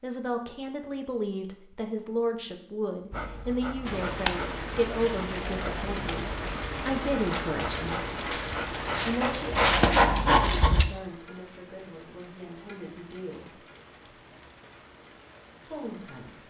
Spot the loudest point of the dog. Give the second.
10 s.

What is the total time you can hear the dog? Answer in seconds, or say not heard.
8 s.